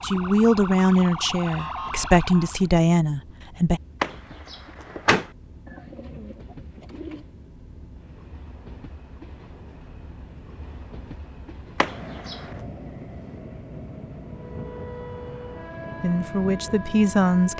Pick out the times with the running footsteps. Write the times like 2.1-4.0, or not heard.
not heard.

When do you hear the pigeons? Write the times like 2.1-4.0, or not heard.
5.7-7.2.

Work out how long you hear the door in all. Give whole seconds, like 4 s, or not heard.
2 s.